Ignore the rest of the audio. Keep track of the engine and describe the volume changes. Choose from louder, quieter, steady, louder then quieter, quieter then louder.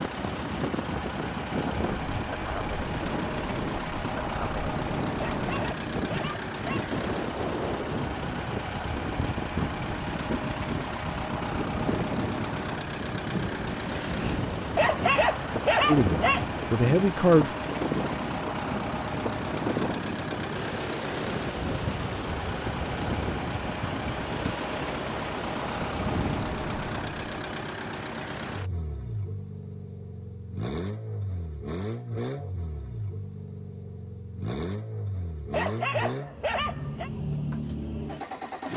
steady.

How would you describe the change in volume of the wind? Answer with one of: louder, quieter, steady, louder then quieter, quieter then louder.
steady.